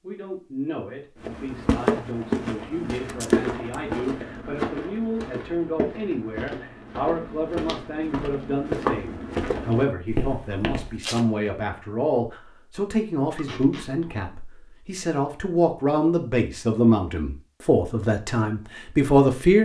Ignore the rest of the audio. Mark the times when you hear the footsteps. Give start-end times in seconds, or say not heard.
1.2-10.9.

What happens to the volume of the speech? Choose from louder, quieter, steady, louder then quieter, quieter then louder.
louder.